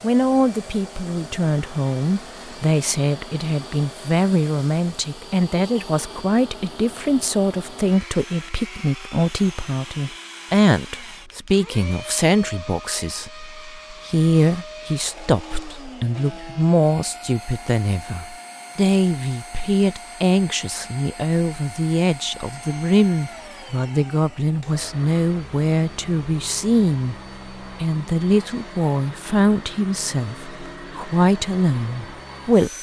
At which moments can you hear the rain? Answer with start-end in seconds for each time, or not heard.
not heard.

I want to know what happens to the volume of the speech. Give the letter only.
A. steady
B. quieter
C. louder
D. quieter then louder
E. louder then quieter
A.